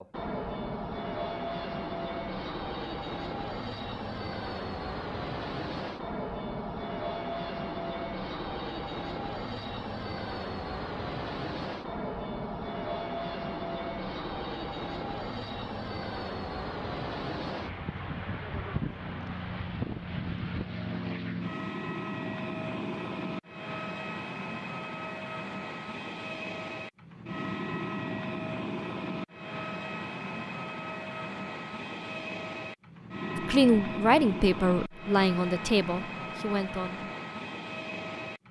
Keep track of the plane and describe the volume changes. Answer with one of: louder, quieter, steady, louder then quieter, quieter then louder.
steady.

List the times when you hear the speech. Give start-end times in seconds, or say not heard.
33.4-37.0.